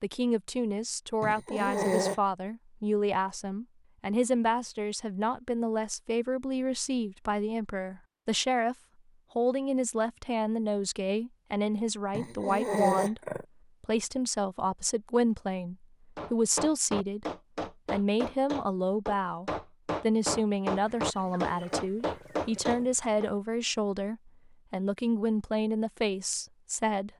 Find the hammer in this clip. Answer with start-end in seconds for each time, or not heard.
16.1-23.3.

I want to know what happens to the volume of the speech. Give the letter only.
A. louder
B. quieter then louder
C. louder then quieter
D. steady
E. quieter
D.